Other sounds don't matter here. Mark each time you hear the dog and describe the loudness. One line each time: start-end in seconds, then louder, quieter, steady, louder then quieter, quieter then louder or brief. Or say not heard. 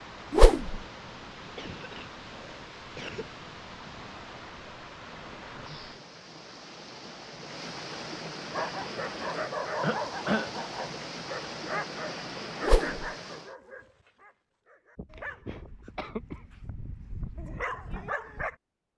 8.5-18.6 quieter then louder.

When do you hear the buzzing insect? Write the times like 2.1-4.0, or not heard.
not heard.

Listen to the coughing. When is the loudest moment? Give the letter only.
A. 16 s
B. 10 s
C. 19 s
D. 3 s
B.